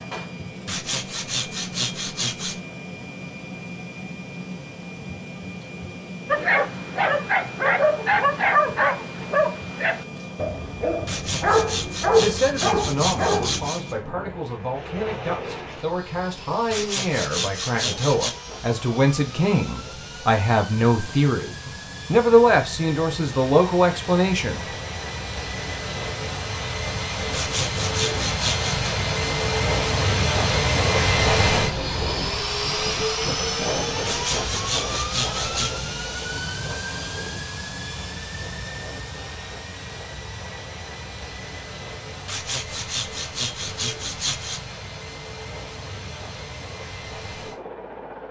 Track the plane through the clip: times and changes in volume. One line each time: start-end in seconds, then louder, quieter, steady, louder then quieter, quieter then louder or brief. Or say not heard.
0.0-48.2 louder then quieter.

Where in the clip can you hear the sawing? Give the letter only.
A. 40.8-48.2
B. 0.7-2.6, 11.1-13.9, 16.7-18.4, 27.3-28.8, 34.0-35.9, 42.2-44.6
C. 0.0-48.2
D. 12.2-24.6
B.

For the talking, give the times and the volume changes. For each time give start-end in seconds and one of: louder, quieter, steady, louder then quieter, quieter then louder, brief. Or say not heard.
12.2-24.6 louder.